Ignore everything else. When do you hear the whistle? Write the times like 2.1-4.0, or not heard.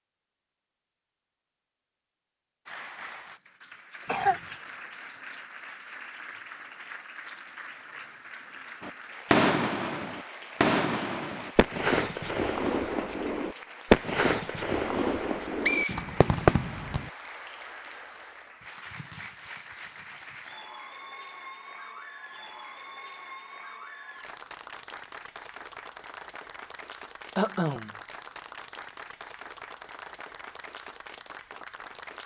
15.1-16.8.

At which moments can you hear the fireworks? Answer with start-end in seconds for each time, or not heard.
8.8-17.1.